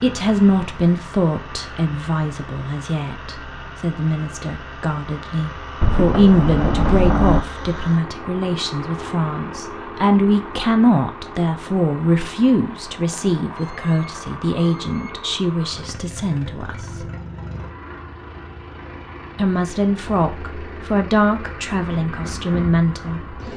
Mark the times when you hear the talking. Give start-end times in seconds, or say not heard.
0.0-17.1, 19.4-23.4.